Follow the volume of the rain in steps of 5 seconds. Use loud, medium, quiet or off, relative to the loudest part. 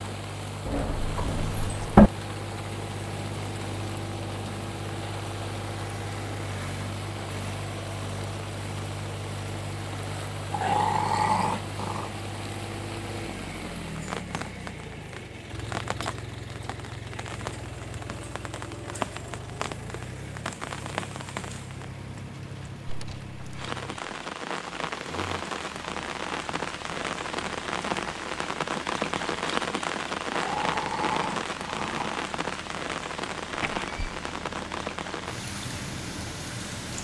quiet, quiet, medium, medium, medium, loud, loud, medium.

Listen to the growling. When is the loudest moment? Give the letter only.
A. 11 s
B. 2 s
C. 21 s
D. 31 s
A.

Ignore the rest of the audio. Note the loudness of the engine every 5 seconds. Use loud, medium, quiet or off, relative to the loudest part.
loud, loud, loud, loud, medium, medium, medium, medium.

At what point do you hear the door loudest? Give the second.
2 s.